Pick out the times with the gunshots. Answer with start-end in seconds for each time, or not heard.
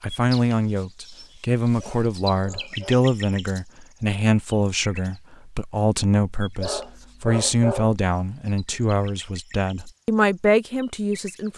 not heard.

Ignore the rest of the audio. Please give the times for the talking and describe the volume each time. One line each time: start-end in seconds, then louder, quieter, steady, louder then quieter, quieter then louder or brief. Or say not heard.
0.0-11.5 steady.